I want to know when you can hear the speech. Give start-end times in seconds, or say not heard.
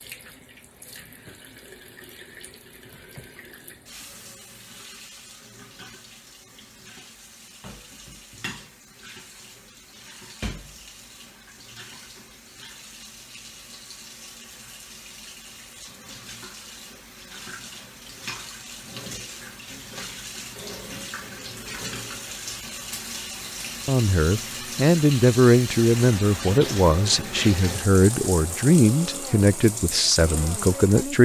23.9-31.2.